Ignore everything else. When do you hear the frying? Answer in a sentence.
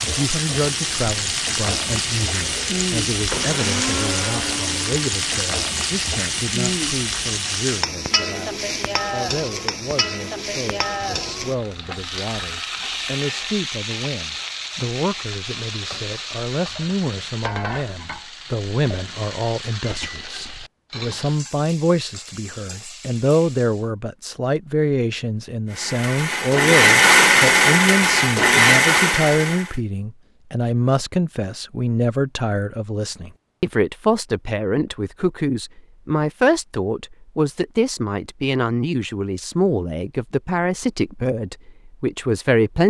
The frying can be heard from 0.0 to 23.9 s.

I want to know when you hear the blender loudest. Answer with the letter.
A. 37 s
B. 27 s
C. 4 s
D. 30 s
B.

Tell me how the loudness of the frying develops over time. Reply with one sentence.
The volume of the frying goes down.